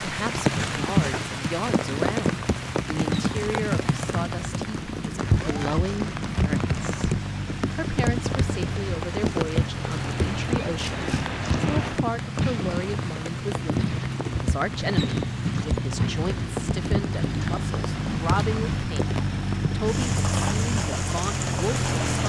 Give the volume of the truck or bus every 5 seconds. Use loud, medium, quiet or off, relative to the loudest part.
medium, medium, loud, loud, loud.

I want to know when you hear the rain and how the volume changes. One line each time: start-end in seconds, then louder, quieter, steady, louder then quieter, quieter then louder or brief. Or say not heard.
0.0-22.2 quieter.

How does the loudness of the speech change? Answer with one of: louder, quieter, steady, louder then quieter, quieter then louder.
steady.